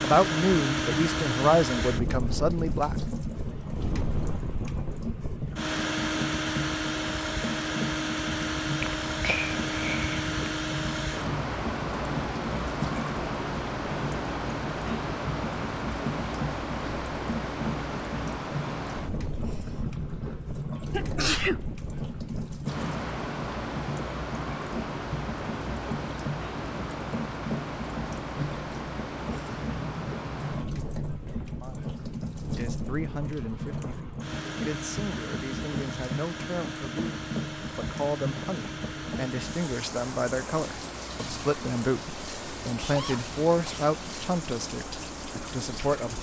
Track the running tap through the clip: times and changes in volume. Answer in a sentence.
You can hear the running tap from 0.0 to 46.1 s, at a steady volume.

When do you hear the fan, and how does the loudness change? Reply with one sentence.
You can hear the fan from 0.0 to 46.1 s, getting quieter.